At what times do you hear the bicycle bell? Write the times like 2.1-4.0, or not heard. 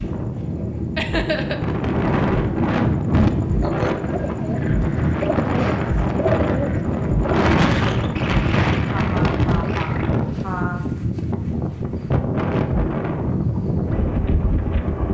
not heard.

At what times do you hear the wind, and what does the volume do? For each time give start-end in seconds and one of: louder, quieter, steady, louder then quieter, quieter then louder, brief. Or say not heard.
0.0-15.0 steady.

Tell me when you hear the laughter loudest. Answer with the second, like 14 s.
1 s.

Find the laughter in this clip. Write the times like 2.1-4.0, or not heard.
0.9-1.6, 8.9-10.8.